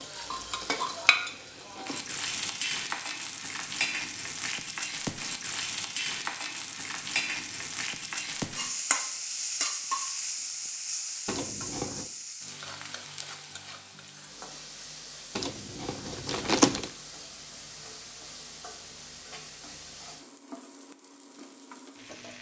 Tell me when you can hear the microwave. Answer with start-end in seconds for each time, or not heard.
not heard.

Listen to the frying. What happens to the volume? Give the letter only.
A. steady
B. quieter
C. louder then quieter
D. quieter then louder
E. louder
B.